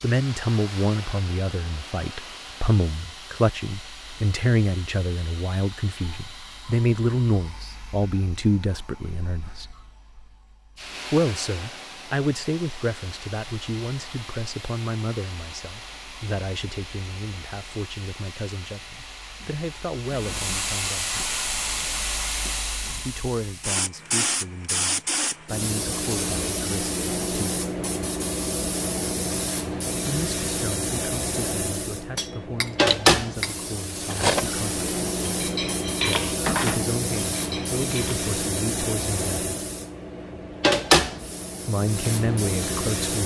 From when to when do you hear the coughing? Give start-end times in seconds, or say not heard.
not heard.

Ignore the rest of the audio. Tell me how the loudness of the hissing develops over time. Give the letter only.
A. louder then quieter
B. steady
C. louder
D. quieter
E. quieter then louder
C.